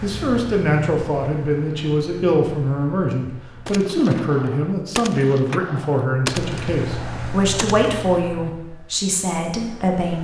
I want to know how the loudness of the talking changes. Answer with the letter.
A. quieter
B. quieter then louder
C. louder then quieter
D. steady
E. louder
D.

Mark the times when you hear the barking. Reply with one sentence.
The barking can't be heard in this clip.